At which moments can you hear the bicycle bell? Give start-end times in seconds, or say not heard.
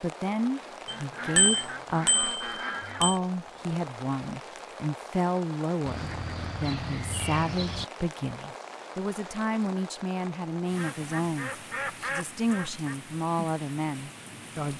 0.8-3.1.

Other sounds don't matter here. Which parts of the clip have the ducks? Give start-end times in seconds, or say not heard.
0.9-3.1, 5.8-7.8, 10.8-12.9.